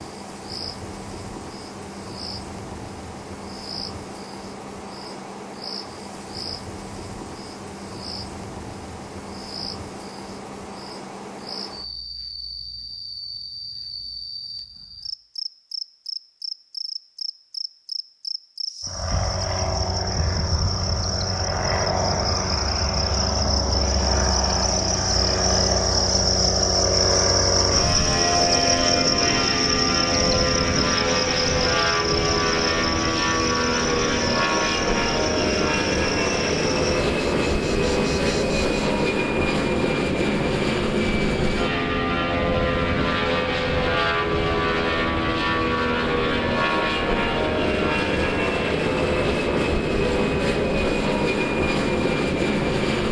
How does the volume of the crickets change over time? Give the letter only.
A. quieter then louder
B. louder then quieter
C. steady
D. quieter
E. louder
B.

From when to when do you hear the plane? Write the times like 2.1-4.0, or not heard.
18.9-53.0.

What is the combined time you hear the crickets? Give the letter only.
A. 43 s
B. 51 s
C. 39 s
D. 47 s
C.